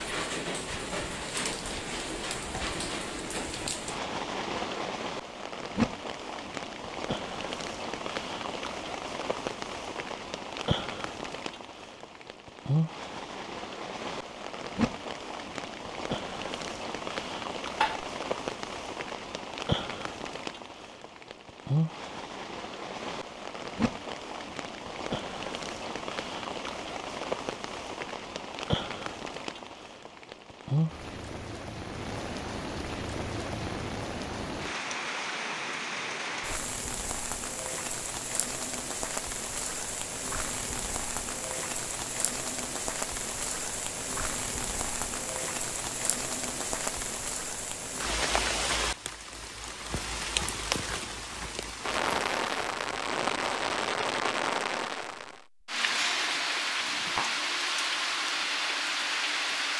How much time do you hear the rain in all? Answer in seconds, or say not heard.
60 s.